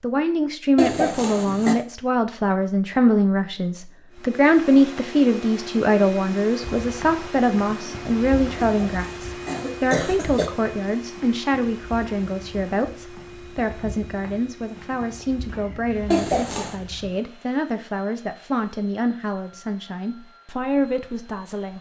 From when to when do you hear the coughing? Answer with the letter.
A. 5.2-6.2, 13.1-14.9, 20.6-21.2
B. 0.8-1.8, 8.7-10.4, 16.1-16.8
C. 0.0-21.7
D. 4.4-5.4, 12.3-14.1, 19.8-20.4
B.